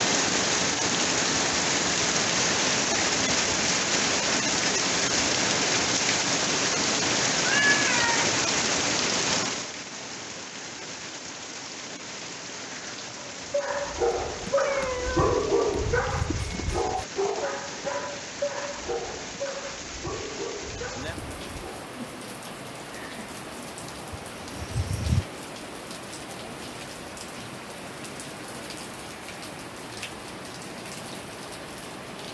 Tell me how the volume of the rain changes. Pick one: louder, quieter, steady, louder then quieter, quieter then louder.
quieter.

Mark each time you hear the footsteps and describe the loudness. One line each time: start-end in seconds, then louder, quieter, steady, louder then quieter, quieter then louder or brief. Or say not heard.
not heard.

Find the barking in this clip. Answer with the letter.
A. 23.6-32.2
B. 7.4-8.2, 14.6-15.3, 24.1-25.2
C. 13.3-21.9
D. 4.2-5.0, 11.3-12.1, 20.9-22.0
C.